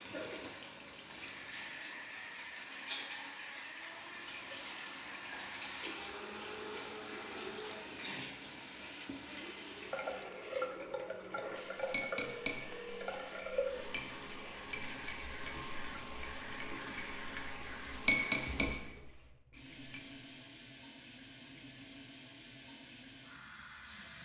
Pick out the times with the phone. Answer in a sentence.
You can hear the phone from 12.1 to 13.2 s.